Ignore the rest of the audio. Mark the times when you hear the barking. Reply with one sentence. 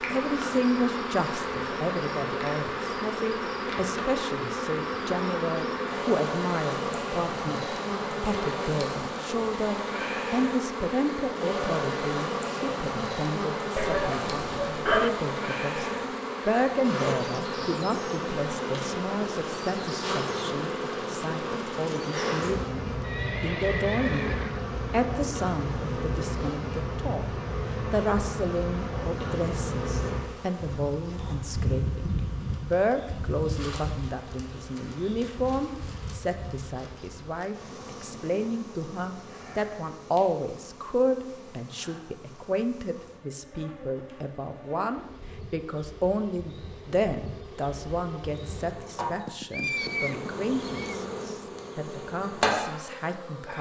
You can hear the barking from 13.8 to 15.1 s.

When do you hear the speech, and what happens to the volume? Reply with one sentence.
The speech can be heard from 0.1 to 53.5 s, at a steady volume.